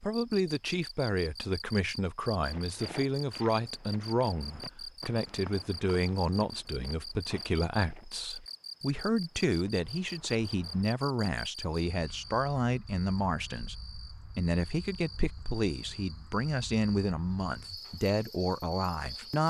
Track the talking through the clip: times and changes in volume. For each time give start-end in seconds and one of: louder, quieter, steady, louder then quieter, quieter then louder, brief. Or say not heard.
0.0-19.4 steady.